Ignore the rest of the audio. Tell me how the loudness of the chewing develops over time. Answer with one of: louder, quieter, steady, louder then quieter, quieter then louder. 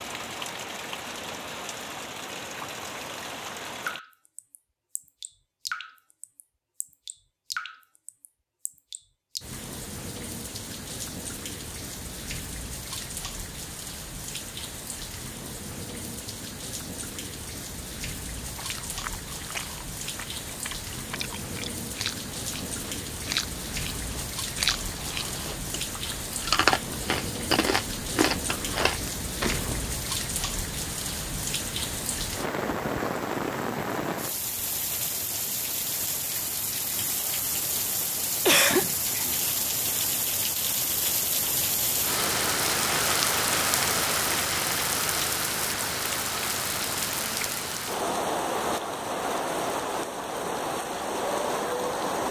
louder.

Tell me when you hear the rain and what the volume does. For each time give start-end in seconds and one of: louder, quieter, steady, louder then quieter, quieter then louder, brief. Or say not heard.
0.0-52.2 louder.